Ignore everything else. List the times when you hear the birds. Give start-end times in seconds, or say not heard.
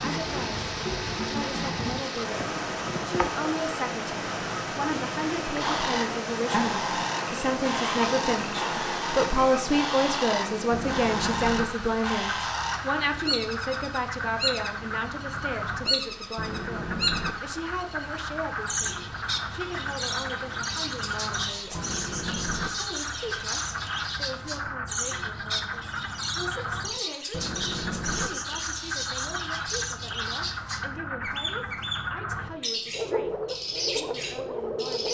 5.5-35.0.